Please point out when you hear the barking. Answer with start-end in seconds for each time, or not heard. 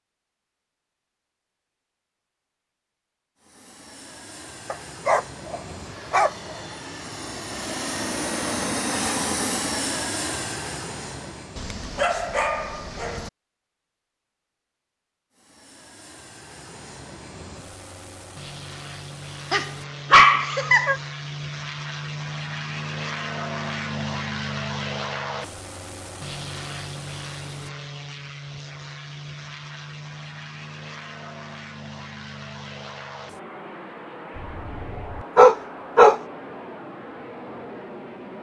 4.7-6.6, 11.6-13.3, 19.5-21.0, 34.5-36.2.